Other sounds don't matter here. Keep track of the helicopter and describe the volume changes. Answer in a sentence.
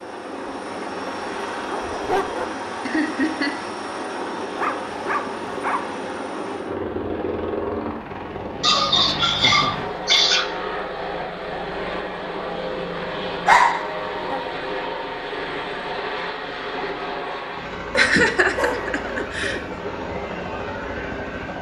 The loudness of the helicopter stays about the same.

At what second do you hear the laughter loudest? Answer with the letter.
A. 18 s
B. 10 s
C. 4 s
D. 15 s
A.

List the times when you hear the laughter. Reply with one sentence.
You can hear the laughter from 2.9 to 3.6 s, from 9.3 to 9.9 s and from 17.9 to 19.6 s.